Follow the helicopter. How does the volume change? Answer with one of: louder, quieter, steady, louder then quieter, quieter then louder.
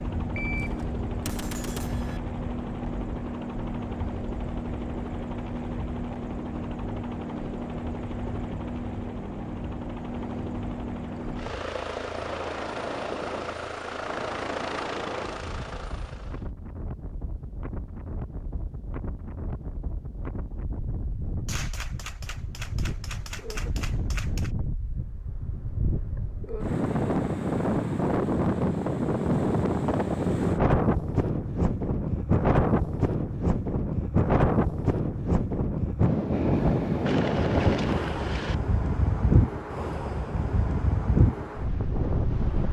steady.